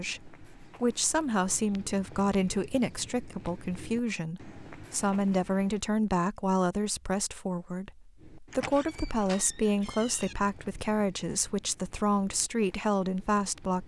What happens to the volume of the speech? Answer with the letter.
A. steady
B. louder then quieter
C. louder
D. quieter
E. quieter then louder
A.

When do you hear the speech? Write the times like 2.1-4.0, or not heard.
0.0-13.8.